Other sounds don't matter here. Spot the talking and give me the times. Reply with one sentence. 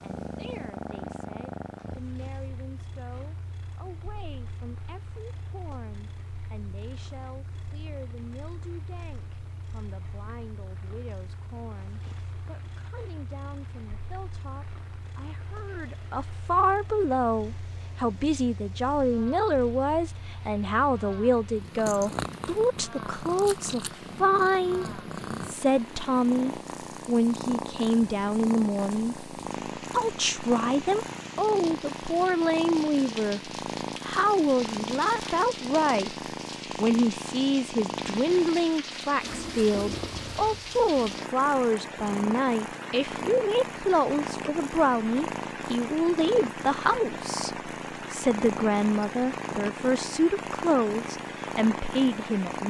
The talking can be heard from 0.2 to 52.6 s.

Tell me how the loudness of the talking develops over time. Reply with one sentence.
The loudness of the talking goes up.